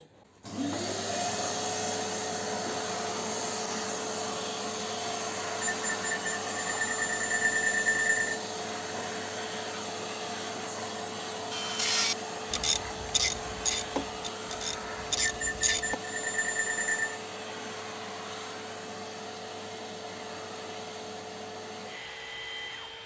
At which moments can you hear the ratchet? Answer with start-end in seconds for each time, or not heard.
11.5-15.9.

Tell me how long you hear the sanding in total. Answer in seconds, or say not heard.
not heard.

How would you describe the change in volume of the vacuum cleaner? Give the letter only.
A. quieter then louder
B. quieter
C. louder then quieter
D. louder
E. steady
B.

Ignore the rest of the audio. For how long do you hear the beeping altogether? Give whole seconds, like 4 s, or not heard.
5 s.